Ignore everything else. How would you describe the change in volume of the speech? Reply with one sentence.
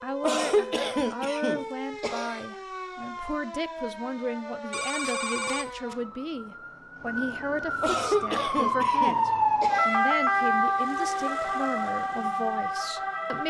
The loudness of the speech stays about the same.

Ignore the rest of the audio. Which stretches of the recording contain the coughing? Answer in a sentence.
The coughing can be heard from 0.2 to 2.5 s and from 7.8 to 10.0 s.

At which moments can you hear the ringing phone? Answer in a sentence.
You can hear the ringing phone from 4.7 to 6.0 s.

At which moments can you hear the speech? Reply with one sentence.
The speech can be heard from 0.0 to 13.4 s.